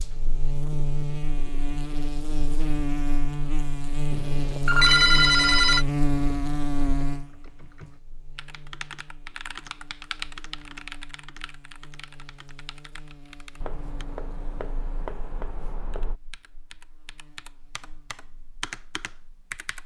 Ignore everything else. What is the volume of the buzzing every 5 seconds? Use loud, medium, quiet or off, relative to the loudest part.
loud, loud, quiet, quiet.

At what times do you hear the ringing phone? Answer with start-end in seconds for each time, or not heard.
4.7-5.8.